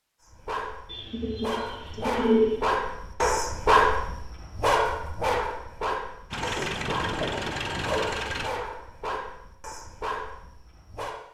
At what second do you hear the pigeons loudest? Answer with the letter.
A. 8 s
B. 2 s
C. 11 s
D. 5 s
B.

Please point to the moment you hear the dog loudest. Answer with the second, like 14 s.
4 s.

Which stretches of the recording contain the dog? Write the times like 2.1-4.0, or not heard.
0.2-11.2.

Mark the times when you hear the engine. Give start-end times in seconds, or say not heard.
6.3-8.5.